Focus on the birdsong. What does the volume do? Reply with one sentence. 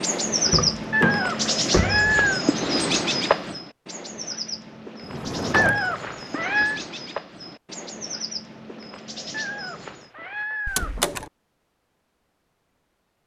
The volume of the birdsong goes down.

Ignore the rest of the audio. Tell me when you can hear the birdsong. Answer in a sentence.
You can hear the birdsong from 0.0 to 10.1 s.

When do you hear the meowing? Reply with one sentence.
The meowing can be heard from 0.9 to 2.5 s, from 5.5 to 6.8 s and from 9.3 to 11.0 s.